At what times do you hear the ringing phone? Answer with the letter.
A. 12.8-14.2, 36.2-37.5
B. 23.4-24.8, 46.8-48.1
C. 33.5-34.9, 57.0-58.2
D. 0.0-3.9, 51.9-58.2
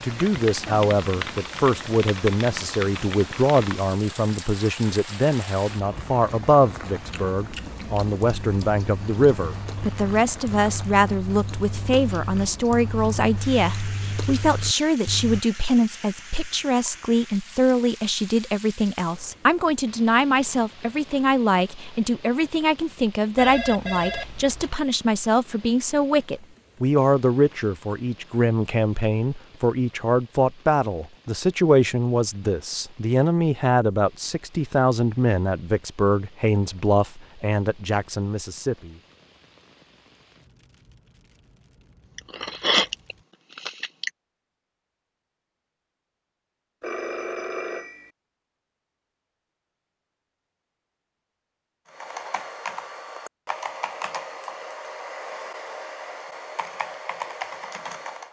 B.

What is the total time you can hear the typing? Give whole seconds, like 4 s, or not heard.
10 s.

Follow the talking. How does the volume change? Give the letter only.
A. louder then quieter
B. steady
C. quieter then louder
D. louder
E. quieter
B.